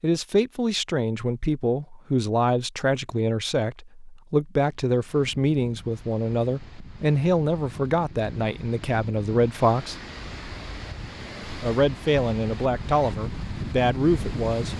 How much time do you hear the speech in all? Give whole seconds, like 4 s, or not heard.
13 s.